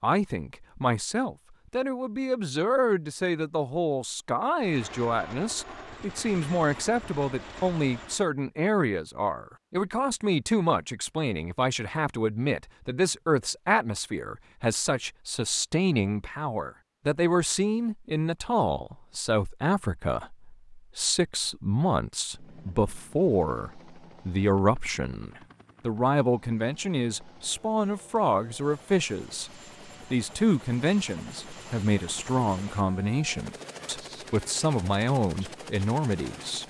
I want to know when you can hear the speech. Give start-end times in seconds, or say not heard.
0.0-36.6.